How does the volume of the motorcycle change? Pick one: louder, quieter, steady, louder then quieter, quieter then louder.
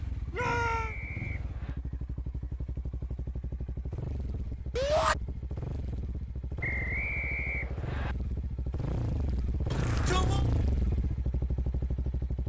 louder.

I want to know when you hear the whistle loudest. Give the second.
7 s.